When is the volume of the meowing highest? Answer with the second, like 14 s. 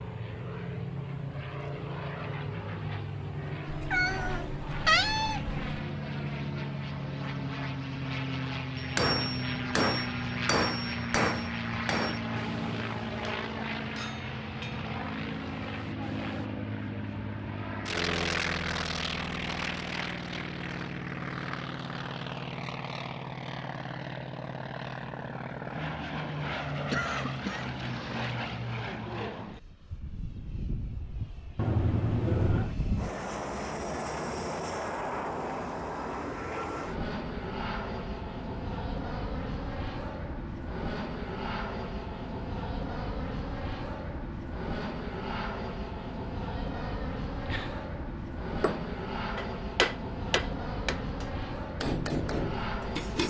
5 s.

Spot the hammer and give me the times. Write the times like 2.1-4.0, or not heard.
8.8-16.5, 48.6-53.2.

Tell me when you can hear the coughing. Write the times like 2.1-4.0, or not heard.
26.9-28.2.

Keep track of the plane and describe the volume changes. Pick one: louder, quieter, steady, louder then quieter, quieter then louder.
steady.